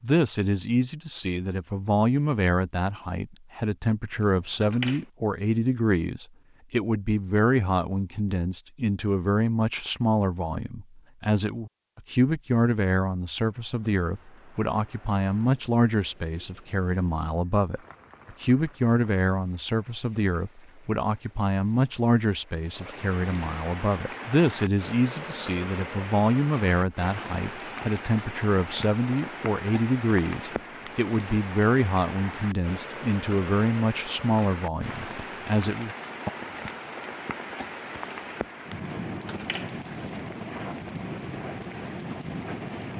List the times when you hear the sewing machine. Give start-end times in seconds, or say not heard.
not heard.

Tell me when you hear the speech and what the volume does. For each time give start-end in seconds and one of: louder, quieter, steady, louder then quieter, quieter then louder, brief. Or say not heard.
0.0-36.3 steady.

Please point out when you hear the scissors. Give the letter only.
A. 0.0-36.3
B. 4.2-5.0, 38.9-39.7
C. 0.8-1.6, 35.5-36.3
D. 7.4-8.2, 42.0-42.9
B.